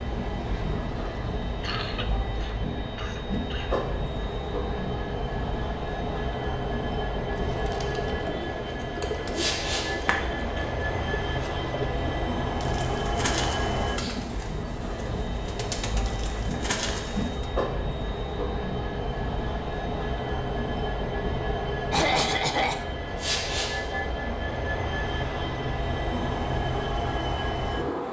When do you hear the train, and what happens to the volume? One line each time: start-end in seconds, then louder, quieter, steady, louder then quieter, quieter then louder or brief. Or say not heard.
0.0-28.0 steady.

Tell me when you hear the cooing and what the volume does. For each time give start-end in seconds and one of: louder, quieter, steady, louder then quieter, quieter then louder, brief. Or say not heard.
7.3-17.4 steady.